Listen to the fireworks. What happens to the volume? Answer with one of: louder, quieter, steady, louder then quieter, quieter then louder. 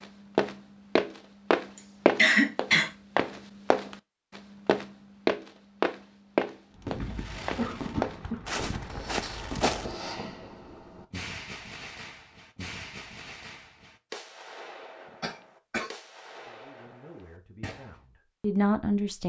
quieter.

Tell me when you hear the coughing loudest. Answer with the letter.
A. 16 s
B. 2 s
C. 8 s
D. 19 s
B.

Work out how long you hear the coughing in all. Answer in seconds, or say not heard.
3 s.